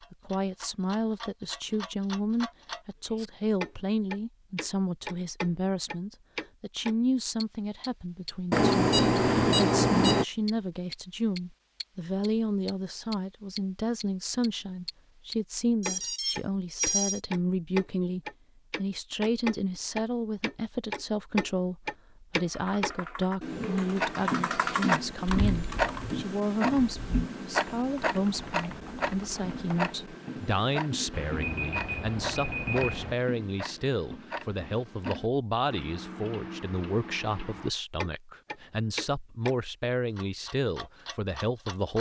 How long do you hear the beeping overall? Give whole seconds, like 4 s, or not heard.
5 s.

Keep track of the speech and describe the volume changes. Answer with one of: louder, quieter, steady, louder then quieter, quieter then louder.
steady.